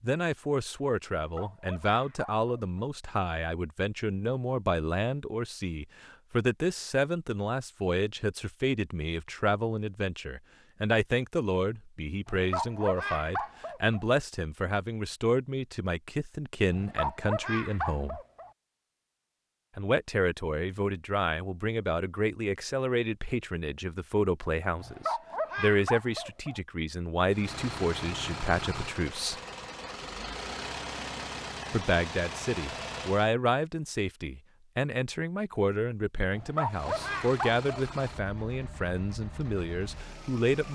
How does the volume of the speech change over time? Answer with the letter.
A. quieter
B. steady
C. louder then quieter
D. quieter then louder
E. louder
B.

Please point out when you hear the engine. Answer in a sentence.
You can hear the engine from 27.3 to 33.3 s and from 36.6 to 40.6 s.